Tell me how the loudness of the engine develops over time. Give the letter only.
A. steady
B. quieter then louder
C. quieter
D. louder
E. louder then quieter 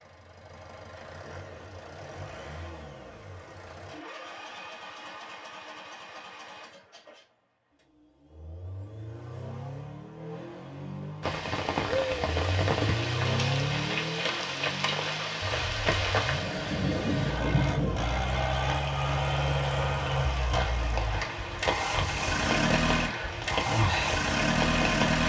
D.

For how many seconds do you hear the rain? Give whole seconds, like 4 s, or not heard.
14 s.